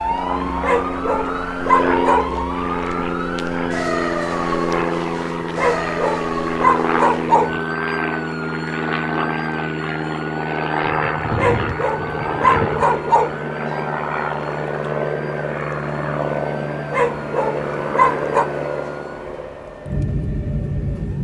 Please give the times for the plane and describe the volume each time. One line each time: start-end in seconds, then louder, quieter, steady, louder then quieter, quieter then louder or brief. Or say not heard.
0.0-21.2 steady.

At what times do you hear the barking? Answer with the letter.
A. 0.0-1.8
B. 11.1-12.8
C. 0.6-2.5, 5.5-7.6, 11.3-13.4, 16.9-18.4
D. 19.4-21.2
C.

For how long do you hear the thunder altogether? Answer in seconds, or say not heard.
2 s.